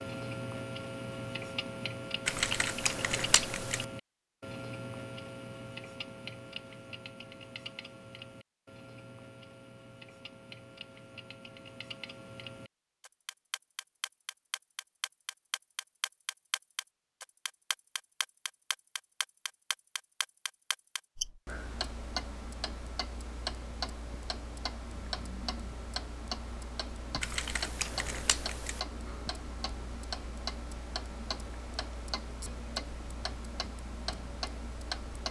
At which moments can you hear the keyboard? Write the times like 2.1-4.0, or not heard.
2.2-3.9, 27.2-28.8.